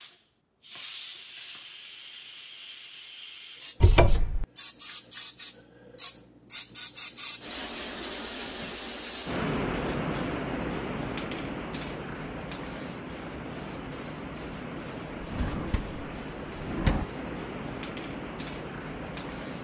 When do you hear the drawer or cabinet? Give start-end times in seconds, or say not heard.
3.8-4.5, 15.2-17.1.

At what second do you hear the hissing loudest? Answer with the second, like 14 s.
10 s.